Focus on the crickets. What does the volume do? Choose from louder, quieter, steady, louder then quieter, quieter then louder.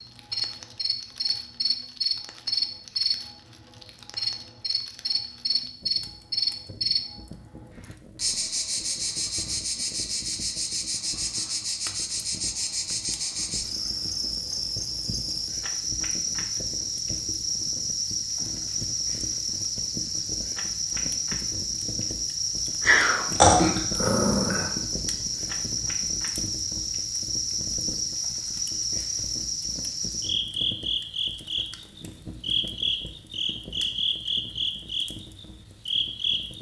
steady.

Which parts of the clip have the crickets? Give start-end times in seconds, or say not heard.
0.0-36.5.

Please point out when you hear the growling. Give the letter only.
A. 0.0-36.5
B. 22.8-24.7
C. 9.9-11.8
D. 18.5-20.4
B.